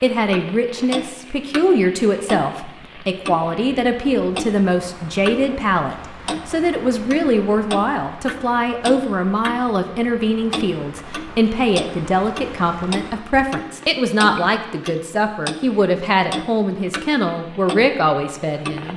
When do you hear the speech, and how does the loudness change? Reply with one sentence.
You can hear the speech from 0.0 to 18.9 s, at a steady volume.